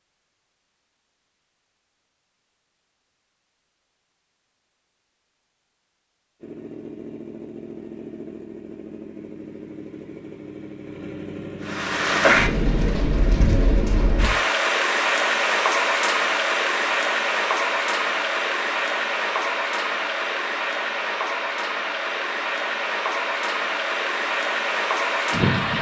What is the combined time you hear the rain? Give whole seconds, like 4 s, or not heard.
14 s.